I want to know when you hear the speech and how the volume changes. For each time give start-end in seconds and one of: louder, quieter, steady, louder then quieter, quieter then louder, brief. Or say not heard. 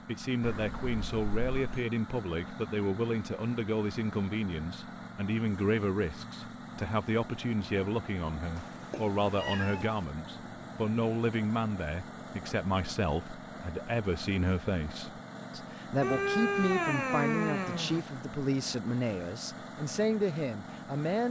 0.1-21.2 steady.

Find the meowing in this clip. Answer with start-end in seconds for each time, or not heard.
0.4-1.9, 8.6-10.1, 16.0-18.1.